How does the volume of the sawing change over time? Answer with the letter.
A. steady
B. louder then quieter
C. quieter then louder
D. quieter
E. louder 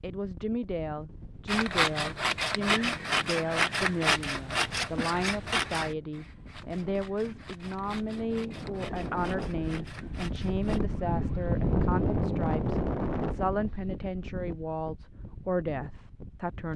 D.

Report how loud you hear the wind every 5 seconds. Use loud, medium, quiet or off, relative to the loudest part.
quiet, medium, loud, quiet.